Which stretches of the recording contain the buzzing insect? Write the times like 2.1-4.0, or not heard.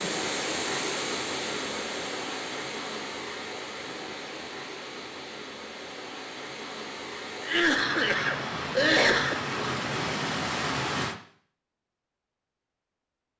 not heard.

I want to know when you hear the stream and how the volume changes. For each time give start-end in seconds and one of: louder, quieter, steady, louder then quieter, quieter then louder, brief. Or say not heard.
0.0-11.2 quieter then louder.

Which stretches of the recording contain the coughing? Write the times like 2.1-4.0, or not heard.
7.4-9.3.